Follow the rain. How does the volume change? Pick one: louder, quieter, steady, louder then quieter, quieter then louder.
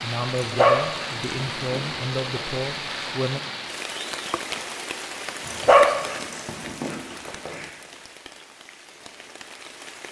quieter.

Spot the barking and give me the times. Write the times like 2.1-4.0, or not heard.
0.4-3.0, 5.5-7.7.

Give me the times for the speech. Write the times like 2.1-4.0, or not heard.
0.0-3.4.